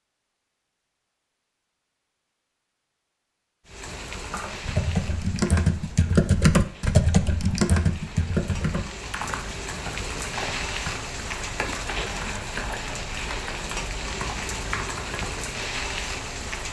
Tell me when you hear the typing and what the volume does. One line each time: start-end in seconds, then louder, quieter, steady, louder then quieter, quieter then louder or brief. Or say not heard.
4.1-15.5 quieter.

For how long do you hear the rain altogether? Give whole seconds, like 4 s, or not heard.
13 s.